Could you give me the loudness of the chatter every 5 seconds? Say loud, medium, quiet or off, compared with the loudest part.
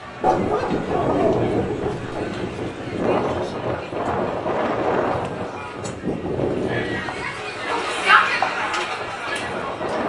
quiet, loud.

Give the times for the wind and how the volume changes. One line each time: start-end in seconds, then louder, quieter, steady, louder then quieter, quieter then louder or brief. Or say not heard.
0.0-10.0 quieter.